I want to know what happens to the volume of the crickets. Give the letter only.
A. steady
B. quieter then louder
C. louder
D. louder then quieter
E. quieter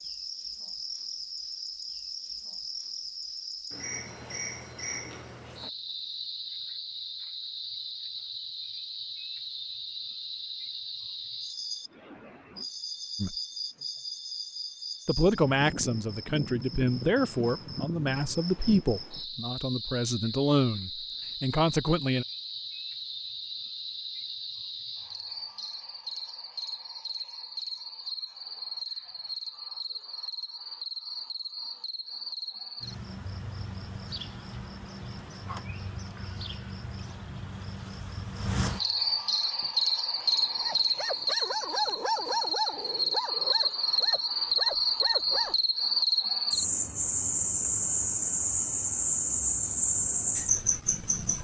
C.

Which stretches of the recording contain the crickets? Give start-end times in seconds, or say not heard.
0.0-51.4.